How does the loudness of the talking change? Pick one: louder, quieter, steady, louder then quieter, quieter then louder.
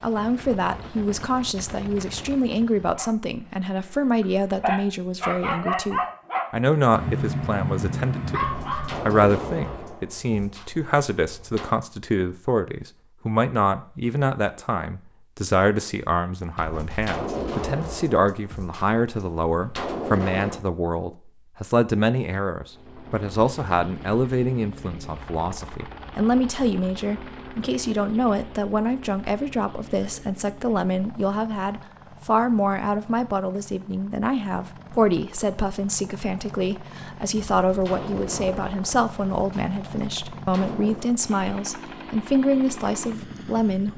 steady.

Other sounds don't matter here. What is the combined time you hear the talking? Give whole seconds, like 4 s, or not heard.
43 s.